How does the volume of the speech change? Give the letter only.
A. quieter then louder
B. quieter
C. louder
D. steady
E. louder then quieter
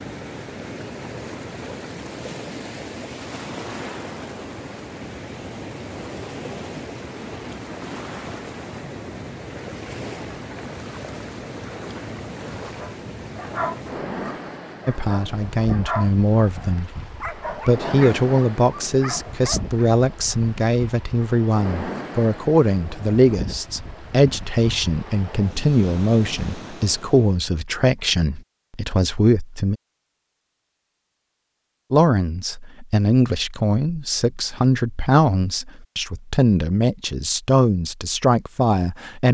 D.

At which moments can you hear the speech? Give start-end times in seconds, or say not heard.
14.8-29.8, 31.9-39.2.